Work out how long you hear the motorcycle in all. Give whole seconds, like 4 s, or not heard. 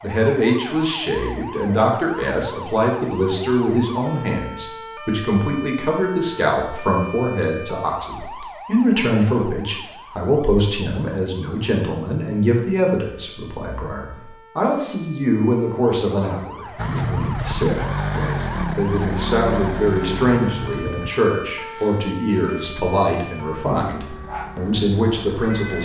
9 s.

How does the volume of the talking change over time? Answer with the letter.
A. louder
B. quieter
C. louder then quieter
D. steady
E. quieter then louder
D.